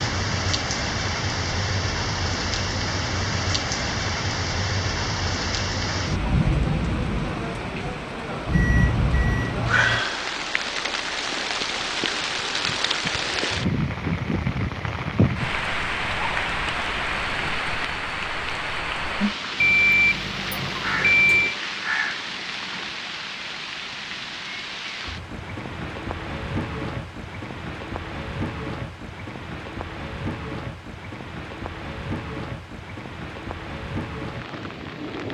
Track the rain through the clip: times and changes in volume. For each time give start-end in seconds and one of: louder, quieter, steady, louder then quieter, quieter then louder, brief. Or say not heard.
0.0-35.2 quieter.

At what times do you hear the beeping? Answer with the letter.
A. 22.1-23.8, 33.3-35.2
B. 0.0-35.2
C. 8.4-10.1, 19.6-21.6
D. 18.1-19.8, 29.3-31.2
C.